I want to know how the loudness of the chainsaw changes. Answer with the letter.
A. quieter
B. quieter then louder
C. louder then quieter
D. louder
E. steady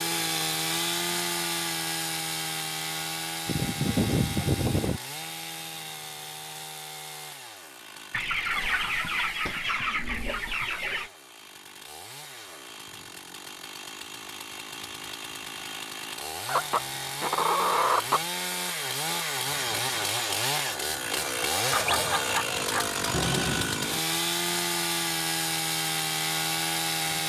B.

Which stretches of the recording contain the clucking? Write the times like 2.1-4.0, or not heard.
3.5-5.0, 8.1-11.1, 16.4-18.2, 21.7-23.7.